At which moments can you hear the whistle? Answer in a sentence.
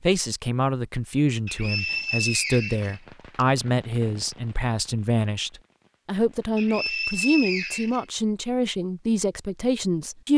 You can hear the whistle from 1.4 to 3.5 s and from 6.5 to 8.1 s.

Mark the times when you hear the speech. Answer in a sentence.
You can hear the speech from 0.0 to 10.3 s.